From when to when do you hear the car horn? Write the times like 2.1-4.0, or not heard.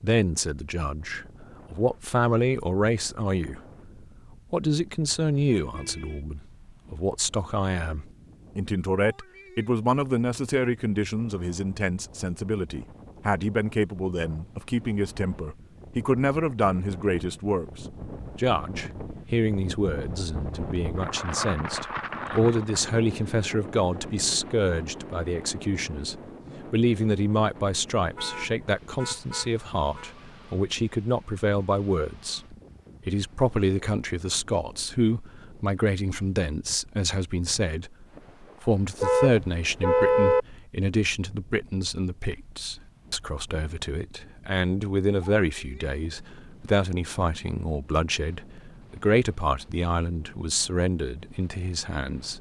5.1-6.2, 28.1-30.1, 39.0-40.4.